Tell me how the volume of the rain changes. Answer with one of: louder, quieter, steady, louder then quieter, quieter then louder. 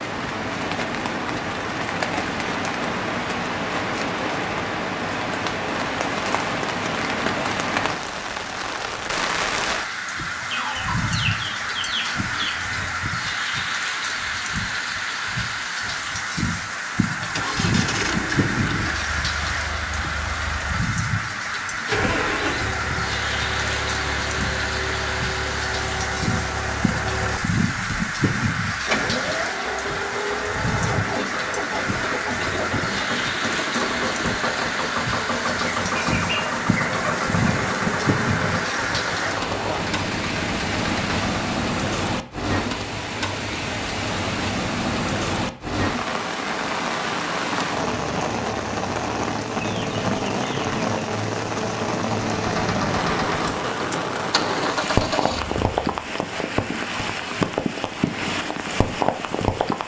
steady.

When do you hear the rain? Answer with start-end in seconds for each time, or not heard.
0.0-59.8.